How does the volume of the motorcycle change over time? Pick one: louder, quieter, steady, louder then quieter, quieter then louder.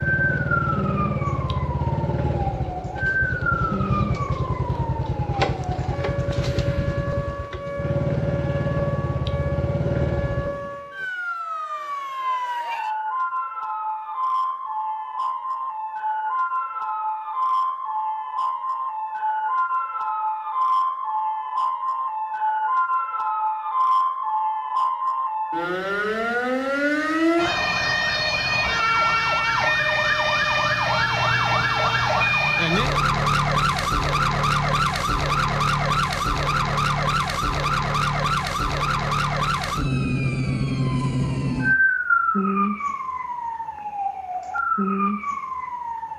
steady.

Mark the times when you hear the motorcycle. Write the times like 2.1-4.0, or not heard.
0.0-10.7.